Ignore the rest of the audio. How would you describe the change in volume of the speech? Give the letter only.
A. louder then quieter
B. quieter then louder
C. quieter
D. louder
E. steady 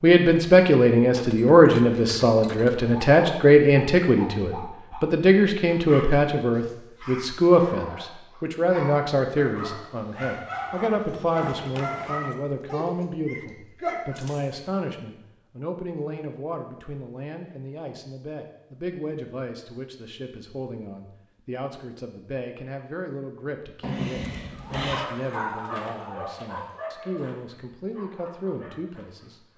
C.